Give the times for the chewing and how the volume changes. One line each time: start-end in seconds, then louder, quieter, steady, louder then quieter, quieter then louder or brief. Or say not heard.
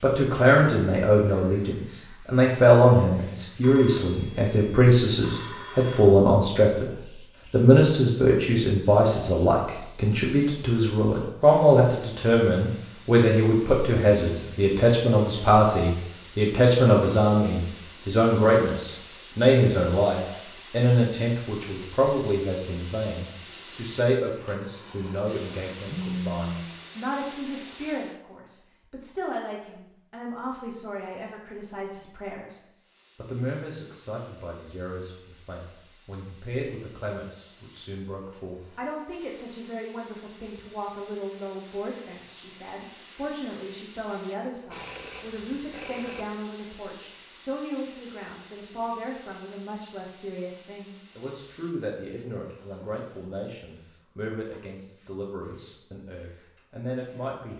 not heard.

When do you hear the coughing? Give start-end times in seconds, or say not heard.
not heard.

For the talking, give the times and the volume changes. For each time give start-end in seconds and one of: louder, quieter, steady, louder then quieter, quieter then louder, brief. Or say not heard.
0.0-57.5 quieter.